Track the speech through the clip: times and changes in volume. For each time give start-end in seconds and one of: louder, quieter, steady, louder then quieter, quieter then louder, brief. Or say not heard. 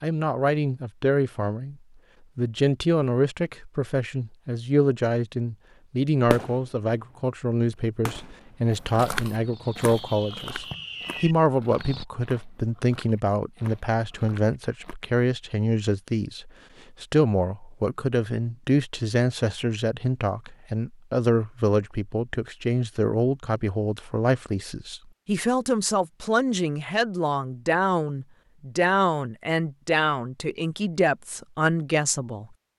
0.0-1.8 brief
2.4-32.5 steady.